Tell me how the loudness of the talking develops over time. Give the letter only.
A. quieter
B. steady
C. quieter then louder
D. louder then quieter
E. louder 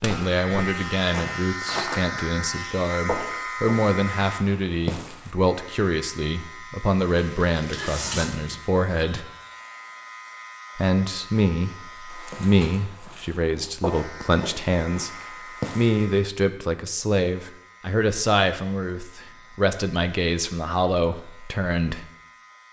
B.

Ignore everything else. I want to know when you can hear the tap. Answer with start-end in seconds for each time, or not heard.
7.1-8.6.